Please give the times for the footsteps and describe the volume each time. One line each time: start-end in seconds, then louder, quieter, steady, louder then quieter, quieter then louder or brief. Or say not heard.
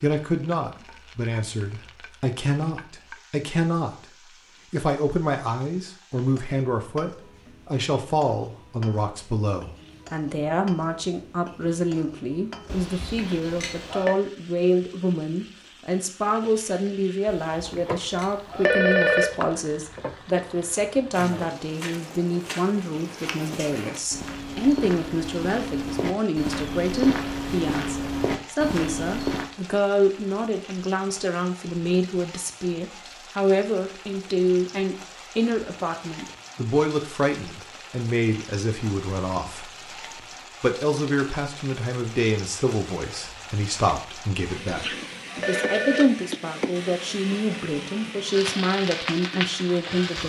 21.1-29.5 louder.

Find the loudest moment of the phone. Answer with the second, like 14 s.
19 s.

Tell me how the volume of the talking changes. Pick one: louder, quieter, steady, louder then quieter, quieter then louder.
steady.